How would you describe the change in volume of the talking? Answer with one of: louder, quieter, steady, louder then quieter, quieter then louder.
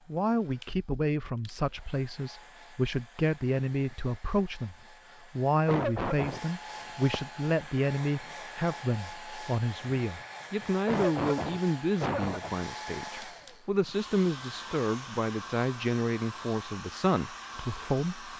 steady.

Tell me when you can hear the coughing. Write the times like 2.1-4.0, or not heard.
5.7-6.4, 10.8-12.6.